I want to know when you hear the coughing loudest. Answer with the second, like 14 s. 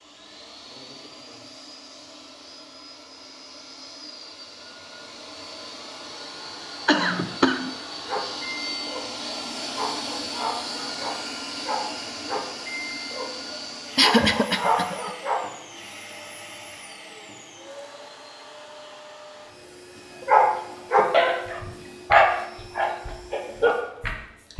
14 s.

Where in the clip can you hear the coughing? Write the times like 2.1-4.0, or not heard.
6.8-7.8, 13.9-15.1.